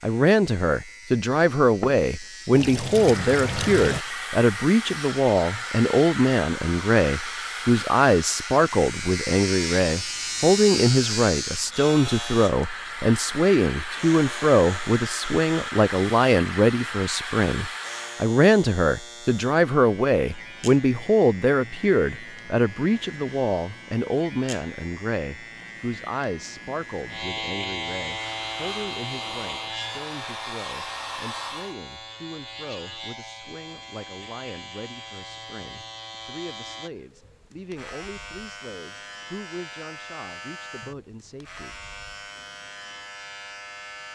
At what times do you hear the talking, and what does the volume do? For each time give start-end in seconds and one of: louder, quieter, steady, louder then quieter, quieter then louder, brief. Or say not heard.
0.0-41.8 quieter.